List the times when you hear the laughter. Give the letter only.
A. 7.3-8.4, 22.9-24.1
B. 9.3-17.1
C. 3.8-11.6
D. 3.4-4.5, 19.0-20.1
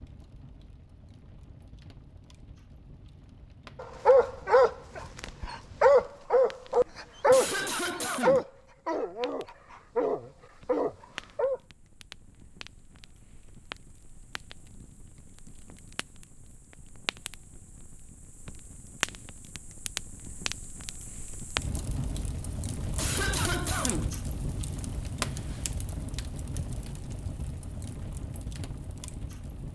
A.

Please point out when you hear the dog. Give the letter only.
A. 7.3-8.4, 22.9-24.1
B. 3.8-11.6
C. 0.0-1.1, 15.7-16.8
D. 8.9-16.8
B.